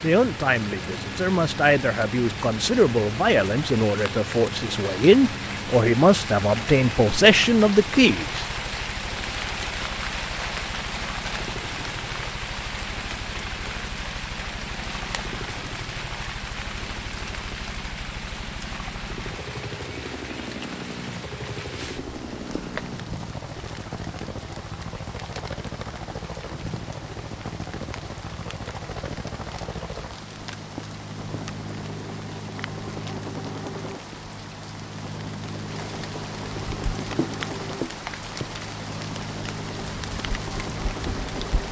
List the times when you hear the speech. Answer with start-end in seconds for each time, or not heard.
0.0-8.4.